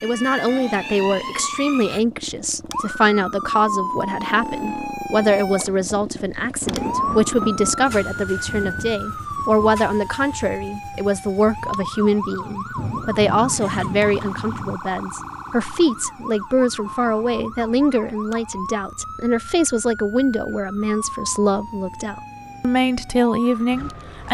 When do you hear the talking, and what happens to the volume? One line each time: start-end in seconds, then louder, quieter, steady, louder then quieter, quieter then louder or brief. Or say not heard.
0.0-24.3 steady.